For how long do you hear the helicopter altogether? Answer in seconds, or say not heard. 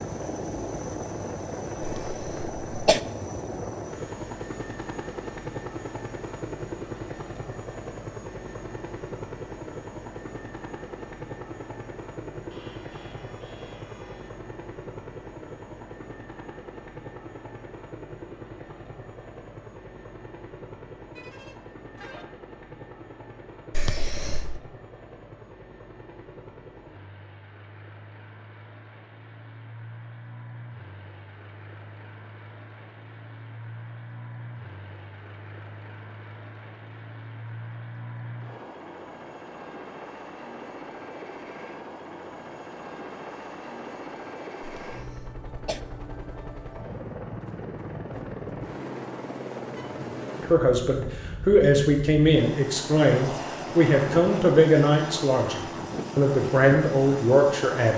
58 s.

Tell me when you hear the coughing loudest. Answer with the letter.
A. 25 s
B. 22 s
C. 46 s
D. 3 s
D.